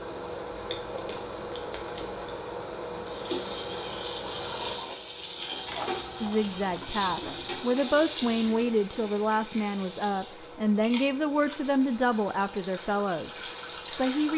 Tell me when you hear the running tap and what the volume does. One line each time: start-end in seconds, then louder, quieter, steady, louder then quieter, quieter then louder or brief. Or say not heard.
3.0-14.3 quieter then louder.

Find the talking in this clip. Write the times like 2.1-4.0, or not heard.
6.2-14.3.